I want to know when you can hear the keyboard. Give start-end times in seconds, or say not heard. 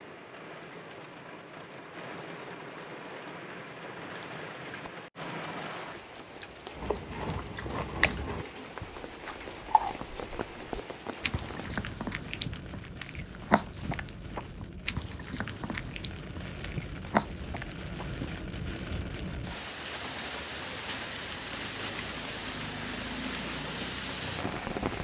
not heard.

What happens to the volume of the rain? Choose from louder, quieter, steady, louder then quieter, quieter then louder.
louder.